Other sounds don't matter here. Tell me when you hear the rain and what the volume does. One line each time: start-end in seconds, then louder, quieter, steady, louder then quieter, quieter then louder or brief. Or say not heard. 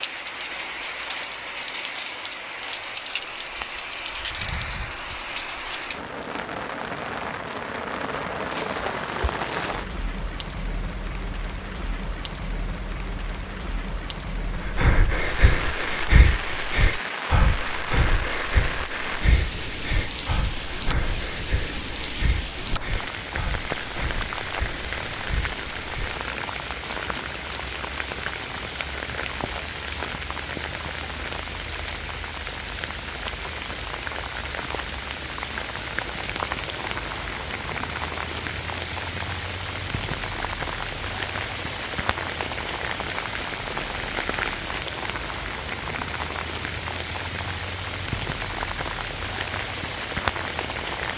0.0-51.1 steady.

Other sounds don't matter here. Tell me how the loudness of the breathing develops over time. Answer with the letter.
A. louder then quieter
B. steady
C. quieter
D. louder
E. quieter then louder
C.